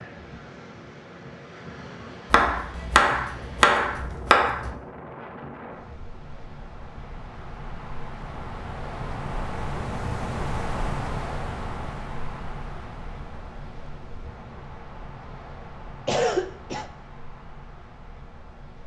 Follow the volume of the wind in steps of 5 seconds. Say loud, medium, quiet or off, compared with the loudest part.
medium, loud, loud, medium.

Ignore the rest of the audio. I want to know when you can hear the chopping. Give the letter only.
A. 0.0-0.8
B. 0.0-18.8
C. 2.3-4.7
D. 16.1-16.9
C.